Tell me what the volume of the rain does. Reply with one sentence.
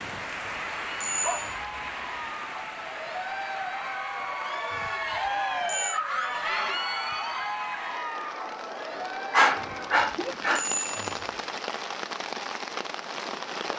The loudness of the rain goes down, then up.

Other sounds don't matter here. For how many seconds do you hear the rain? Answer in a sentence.
The rain can be heard for 14 seconds in total.